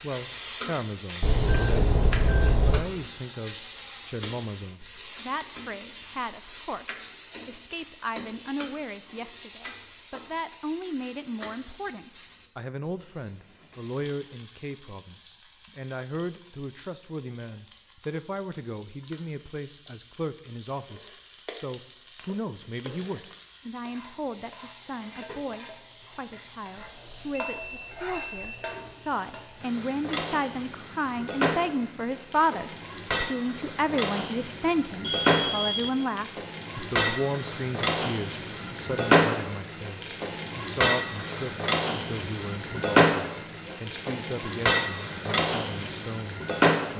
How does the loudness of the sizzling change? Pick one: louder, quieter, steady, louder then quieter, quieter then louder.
quieter then louder.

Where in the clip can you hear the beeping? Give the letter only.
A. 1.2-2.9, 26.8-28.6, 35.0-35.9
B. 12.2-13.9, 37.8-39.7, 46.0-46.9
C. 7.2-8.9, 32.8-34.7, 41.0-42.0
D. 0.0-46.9
A.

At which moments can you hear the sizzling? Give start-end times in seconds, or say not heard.
0.0-46.9.